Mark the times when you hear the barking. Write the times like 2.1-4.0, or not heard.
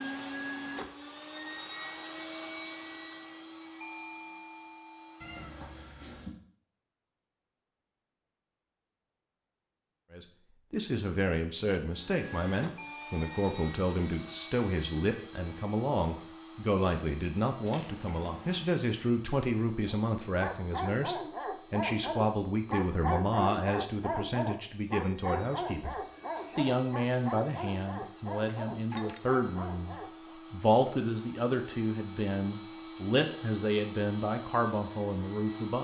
19.9-30.4.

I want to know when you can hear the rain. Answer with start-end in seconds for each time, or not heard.
not heard.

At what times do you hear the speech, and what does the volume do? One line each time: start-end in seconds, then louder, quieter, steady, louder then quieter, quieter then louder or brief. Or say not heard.
10.1-35.7 steady.